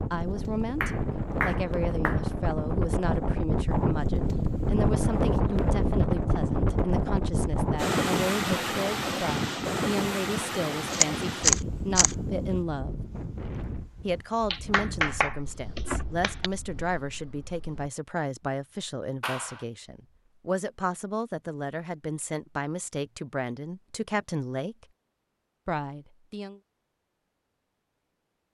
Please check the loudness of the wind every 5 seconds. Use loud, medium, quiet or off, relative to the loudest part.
loud, loud, medium, quiet, off, off.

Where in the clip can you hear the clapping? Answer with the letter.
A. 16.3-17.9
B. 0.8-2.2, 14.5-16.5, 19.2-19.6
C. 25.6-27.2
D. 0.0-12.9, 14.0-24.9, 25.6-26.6
B.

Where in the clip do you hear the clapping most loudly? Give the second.
15 s.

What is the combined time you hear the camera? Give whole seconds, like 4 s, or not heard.
2 s.